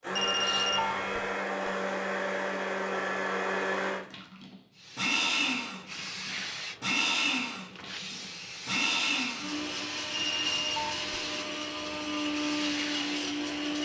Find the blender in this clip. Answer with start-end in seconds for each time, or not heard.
0.0-13.8.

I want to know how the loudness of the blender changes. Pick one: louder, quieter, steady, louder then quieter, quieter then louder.
steady.